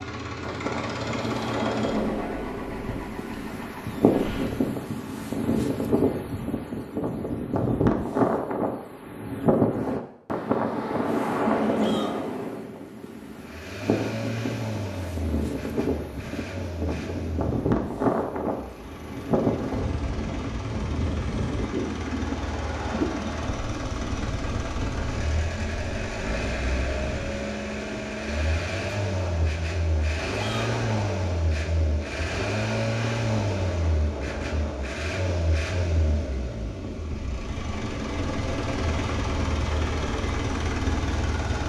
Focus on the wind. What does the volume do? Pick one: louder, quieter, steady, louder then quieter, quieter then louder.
quieter.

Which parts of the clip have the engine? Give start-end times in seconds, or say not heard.
0.0-4.7, 13.3-41.6.